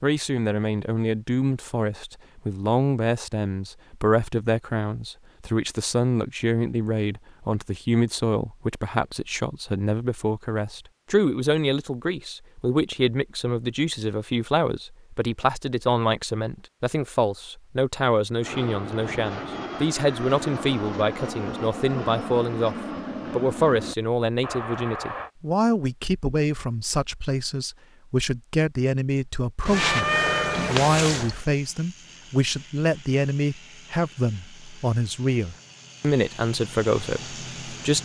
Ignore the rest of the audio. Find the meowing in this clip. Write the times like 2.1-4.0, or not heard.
29.6-31.4.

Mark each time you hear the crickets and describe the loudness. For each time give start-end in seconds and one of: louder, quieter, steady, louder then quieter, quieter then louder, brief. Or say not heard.
not heard.